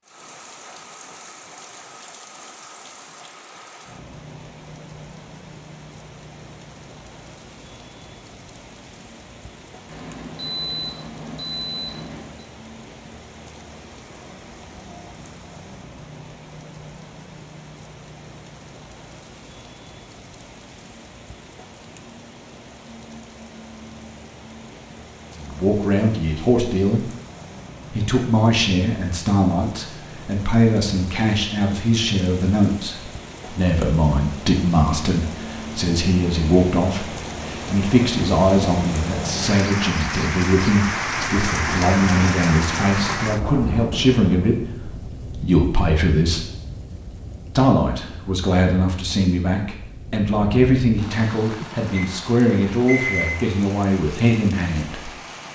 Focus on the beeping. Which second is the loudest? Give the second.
53 s.